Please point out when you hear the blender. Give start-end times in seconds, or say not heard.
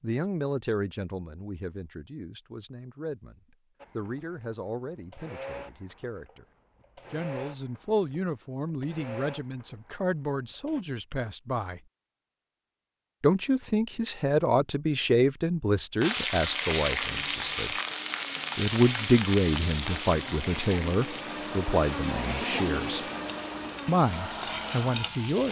3.8-10.8, 16.9-25.3.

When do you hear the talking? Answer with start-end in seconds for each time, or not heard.
0.0-6.5, 7.1-11.8, 13.2-17.8, 18.6-23.0, 23.9-25.4.